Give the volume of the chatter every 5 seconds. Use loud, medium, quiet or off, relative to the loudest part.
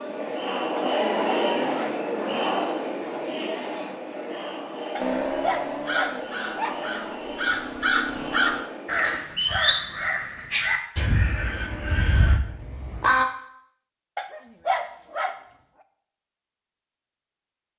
loud, medium, off, off.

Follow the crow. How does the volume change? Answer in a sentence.
The volume of the crow goes up, then down.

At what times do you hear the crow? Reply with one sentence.
You can hear the crow from 5.0 to 13.2 s.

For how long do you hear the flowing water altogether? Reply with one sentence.
You can't hear the flowing water here.